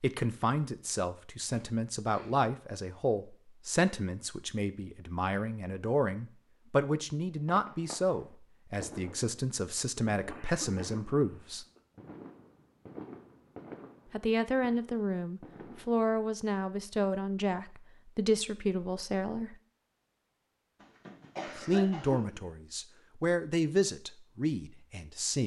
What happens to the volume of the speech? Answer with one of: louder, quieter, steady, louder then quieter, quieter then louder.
steady.